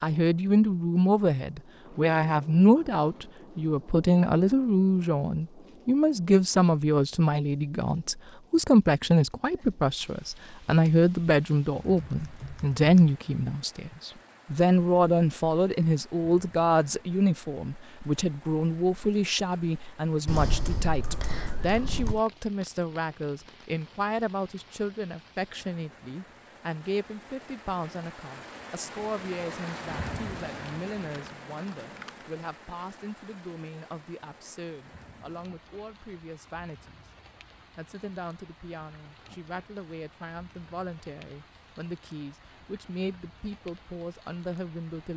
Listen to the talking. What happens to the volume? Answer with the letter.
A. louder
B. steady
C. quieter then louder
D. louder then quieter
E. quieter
E.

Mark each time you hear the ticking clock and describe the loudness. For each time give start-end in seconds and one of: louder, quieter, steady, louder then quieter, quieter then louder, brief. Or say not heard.
not heard.